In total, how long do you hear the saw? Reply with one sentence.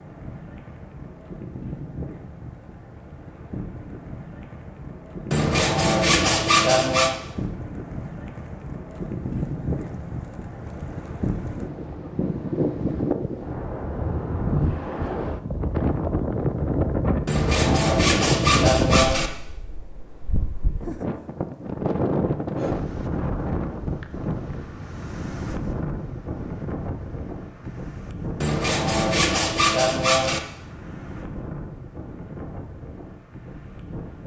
You can hear the saw for 6 seconds altogether.